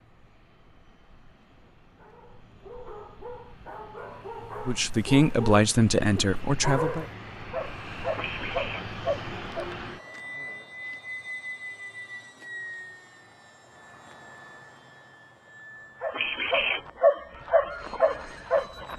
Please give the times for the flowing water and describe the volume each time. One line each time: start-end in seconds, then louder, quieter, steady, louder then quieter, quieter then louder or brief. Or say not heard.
not heard.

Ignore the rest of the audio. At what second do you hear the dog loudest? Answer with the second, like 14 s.
17 s.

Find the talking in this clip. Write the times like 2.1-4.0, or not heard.
4.6-7.0.